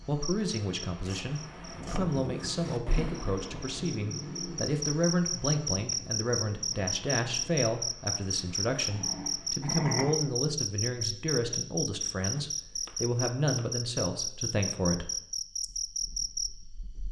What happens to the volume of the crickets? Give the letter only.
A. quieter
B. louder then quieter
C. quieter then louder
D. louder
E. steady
D.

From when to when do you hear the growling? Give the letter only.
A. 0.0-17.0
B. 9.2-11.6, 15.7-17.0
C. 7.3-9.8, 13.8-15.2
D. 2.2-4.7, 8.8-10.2
D.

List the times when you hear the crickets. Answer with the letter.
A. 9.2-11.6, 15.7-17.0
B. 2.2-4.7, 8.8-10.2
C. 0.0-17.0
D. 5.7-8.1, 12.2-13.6
C.